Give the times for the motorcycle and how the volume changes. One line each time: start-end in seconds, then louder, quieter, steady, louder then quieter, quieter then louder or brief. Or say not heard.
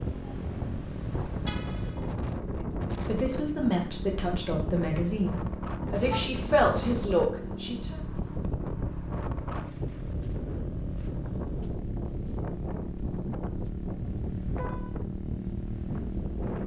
0.0-16.6 steady.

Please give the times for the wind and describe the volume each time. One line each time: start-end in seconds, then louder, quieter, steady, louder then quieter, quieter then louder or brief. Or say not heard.
0.0-16.6 steady.